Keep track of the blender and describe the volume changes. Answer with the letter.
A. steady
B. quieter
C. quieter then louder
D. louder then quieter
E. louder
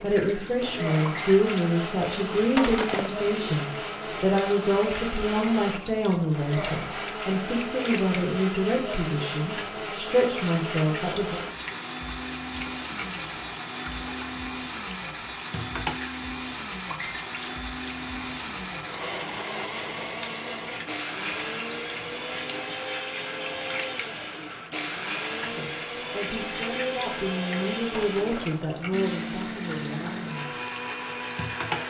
A.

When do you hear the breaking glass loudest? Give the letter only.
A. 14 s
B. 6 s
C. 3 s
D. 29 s
C.